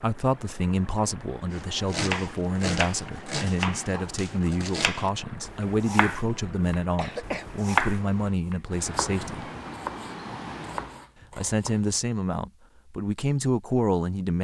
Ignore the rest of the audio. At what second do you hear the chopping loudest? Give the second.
8 s.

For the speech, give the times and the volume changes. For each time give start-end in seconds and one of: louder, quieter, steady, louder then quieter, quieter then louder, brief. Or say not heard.
0.0-9.4 steady
11.3-14.3 brief.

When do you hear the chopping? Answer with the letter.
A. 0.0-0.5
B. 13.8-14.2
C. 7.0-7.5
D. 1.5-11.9
D.